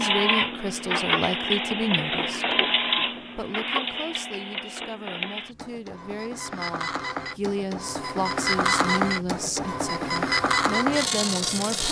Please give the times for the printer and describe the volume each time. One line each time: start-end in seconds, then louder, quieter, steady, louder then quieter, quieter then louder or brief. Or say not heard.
0.0-11.8 quieter then louder.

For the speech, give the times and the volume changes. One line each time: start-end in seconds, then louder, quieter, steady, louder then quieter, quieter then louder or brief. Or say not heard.
0.0-2.6 brief
3.4-11.8 louder.